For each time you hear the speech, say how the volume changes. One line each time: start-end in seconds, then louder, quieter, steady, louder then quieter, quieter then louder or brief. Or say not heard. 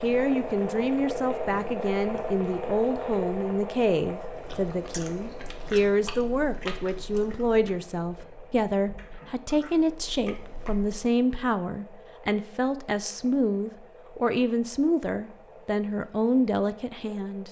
0.0-17.4 steady.